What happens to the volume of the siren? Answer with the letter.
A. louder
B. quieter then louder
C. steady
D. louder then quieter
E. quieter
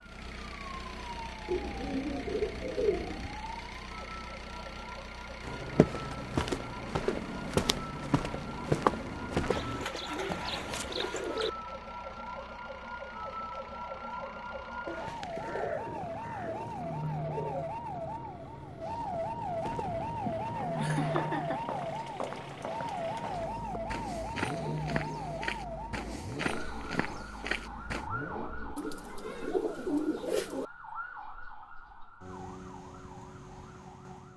D.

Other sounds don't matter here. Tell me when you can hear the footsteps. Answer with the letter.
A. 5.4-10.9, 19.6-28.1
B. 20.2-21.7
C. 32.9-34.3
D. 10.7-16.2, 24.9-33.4
A.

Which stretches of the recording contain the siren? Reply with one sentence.
The siren can be heard from 0.0 to 34.3 s.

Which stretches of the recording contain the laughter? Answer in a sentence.
You can hear the laughter from 20.2 to 21.7 s.